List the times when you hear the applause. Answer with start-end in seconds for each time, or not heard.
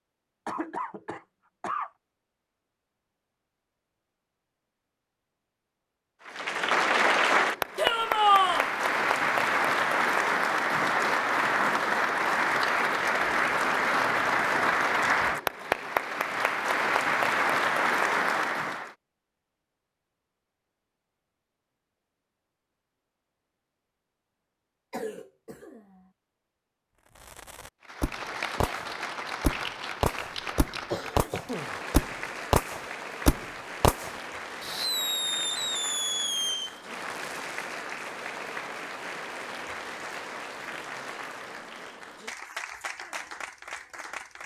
6.2-18.9, 27.8-44.4.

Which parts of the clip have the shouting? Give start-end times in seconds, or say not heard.
7.8-8.7.